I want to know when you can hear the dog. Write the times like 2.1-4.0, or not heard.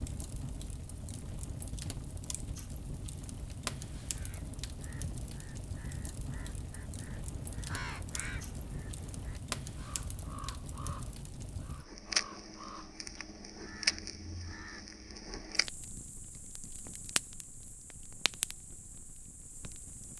not heard.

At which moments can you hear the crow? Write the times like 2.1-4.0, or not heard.
4.0-14.9.